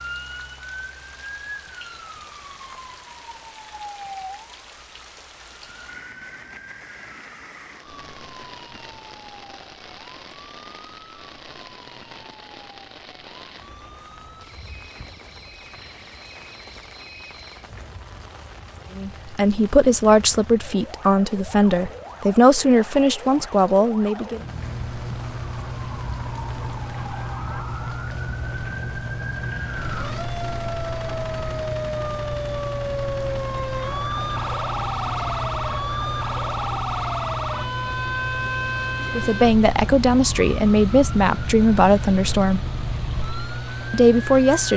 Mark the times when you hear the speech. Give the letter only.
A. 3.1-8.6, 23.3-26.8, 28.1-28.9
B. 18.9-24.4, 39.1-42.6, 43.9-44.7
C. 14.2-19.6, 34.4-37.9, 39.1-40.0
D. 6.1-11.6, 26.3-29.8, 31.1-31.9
B.